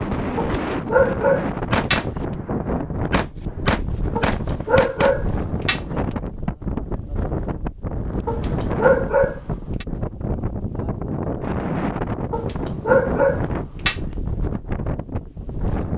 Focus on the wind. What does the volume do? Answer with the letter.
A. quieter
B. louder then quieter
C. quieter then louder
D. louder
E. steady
E.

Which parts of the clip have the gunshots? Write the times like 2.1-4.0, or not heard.
1.7-5.2.